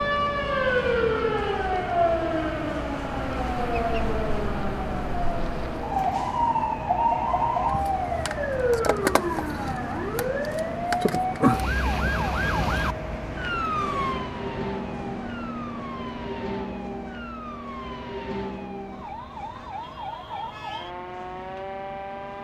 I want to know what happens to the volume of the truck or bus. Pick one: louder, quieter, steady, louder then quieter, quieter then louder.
quieter.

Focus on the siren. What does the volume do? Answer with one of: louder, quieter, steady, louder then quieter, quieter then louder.
quieter.